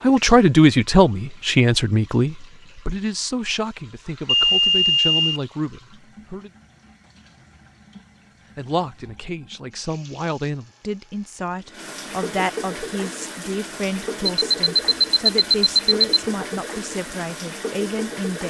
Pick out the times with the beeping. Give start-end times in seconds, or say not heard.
4.2-5.4, 14.2-16.2.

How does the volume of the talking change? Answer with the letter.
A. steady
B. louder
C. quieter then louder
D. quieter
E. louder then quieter
D.